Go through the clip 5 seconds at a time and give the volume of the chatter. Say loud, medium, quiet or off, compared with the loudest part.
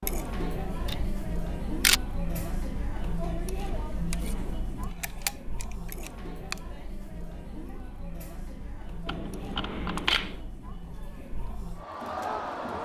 loud, medium, loud.